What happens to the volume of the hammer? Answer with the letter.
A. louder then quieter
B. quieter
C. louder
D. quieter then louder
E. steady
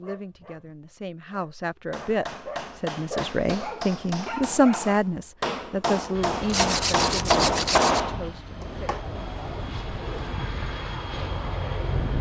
C.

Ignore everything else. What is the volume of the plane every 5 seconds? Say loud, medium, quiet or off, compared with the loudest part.
off, medium, loud.